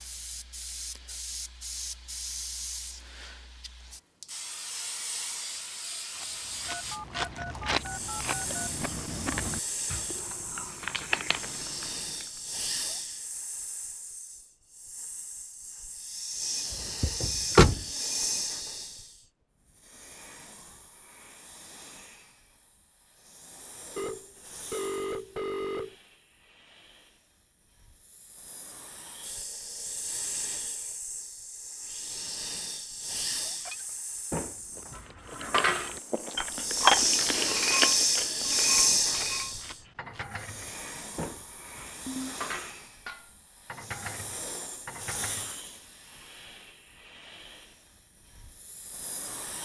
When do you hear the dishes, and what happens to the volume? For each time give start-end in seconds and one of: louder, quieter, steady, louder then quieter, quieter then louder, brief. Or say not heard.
33.6-45.5 louder then quieter.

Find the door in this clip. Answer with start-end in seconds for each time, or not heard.
16.7-17.9.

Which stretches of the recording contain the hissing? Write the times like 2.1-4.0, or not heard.
0.0-49.6.